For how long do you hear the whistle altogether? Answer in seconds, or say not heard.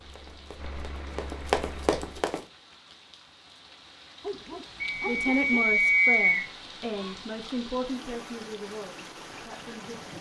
2 s.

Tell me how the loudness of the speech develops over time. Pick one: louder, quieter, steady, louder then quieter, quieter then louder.
quieter.